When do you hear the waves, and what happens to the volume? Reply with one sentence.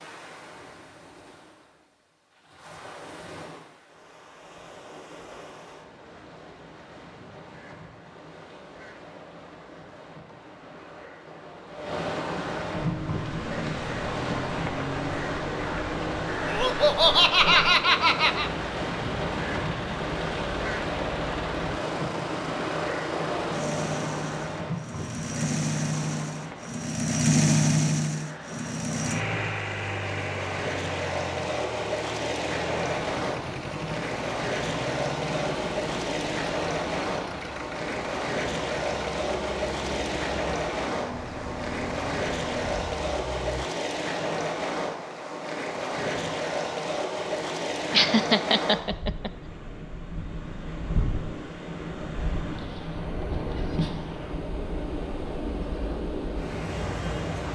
You can hear the waves from 0.0 to 57.5 s, getting louder.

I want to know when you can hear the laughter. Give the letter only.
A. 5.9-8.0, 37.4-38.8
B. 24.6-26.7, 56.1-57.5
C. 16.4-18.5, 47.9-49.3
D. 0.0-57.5
C.